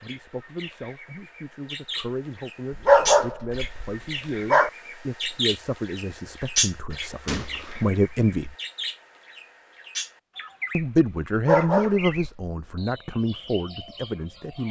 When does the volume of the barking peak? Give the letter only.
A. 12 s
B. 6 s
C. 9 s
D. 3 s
D.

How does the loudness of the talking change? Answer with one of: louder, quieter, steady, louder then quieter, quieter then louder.
louder then quieter.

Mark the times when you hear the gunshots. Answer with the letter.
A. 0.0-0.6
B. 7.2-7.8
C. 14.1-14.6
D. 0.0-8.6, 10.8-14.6
B.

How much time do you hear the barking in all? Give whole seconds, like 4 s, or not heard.
3 s.